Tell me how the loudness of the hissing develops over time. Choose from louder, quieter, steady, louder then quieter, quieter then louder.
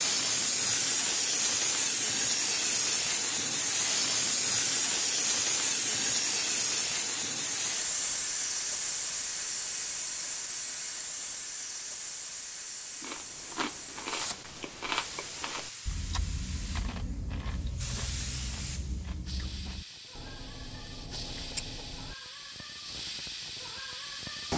quieter.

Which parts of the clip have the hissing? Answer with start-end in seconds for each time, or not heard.
0.0-24.5.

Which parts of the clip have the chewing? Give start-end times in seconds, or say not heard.
12.9-22.1.